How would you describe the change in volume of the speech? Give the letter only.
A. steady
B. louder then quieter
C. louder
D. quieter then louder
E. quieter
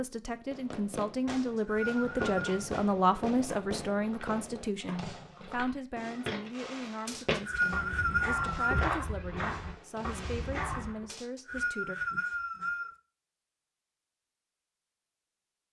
E.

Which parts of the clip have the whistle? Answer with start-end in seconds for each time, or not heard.
1.2-2.4, 7.0-8.9, 11.1-12.9.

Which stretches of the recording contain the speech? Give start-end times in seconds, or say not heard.
0.0-11.9.